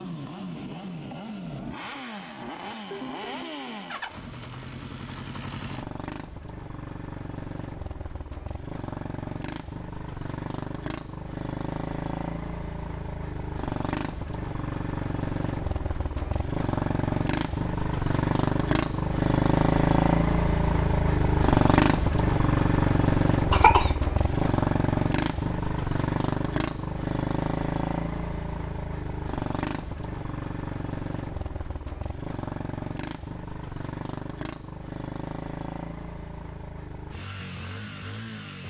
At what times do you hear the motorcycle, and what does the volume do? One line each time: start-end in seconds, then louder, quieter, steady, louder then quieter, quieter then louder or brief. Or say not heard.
0.0-38.6 louder then quieter.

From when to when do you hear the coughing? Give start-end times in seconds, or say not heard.
23.5-24.5.